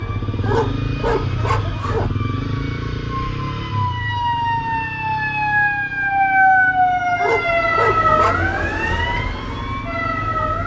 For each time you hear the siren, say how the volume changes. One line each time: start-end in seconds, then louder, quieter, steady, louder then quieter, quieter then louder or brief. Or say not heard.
0.0-10.6 louder then quieter.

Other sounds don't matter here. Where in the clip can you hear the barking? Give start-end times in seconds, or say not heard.
0.4-2.1, 7.2-8.5.